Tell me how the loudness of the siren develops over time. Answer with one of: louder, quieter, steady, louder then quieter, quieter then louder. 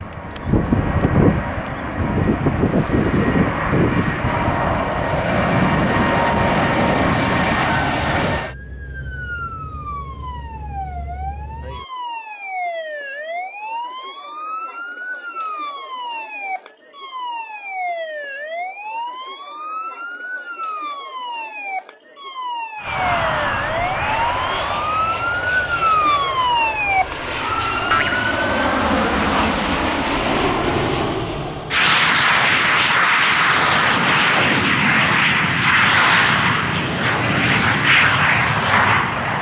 louder.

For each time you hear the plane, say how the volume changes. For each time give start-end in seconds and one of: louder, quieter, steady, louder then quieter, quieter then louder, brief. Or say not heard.
0.0-8.6 steady
22.8-39.3 louder.